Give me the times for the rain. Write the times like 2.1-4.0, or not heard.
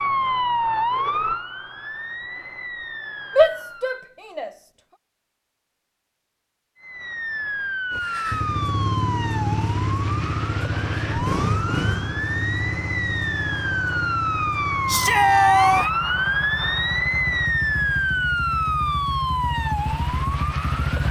not heard.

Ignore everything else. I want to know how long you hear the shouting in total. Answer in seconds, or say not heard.
2 s.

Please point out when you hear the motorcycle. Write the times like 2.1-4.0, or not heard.
7.9-21.0.